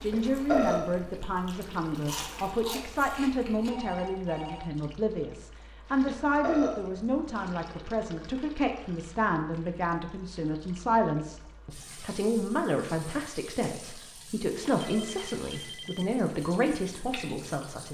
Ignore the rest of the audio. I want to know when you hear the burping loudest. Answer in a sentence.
The loudest moment of the burping is at 1 second.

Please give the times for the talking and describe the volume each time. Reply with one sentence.
You can hear the talking from 0.0 to 17.8 s, at a steady volume.